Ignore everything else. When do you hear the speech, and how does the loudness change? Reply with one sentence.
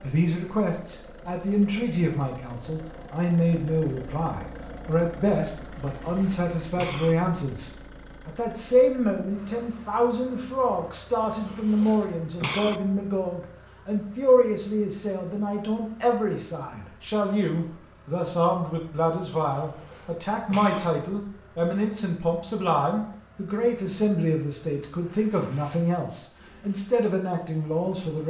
You can hear the speech from 0.0 to 28.2 s, at a steady volume.